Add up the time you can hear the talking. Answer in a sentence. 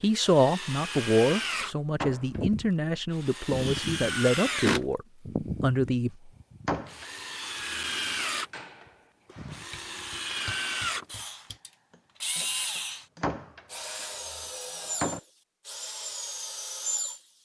You can hear the talking for 6 seconds altogether.